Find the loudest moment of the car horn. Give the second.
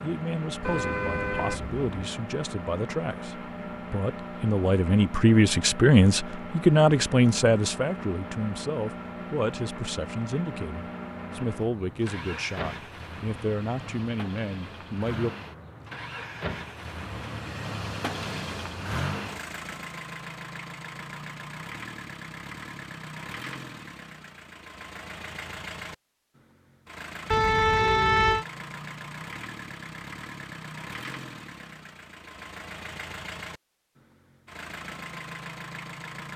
28 s.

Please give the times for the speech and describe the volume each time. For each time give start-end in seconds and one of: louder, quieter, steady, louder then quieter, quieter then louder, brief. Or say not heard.
0.0-15.3 louder then quieter.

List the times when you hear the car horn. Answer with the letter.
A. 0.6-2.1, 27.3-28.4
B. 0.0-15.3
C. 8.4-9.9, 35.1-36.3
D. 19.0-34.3
A.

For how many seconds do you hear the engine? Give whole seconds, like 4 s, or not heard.
36 s.